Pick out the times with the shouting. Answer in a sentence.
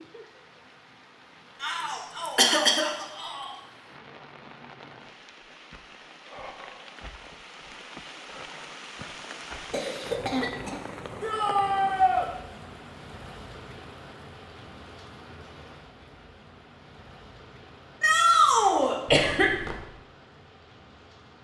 The shouting can be heard from 1.6 to 3.5 s, from 11.2 to 12.2 s and from 18.0 to 18.9 s.